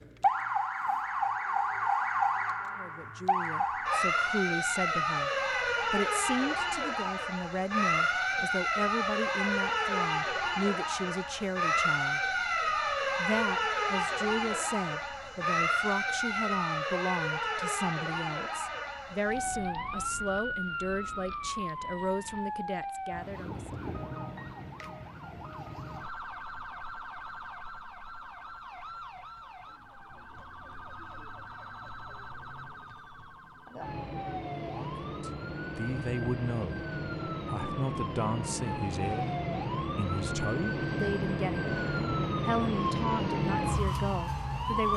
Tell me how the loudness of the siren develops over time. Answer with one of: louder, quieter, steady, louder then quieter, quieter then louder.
quieter then louder.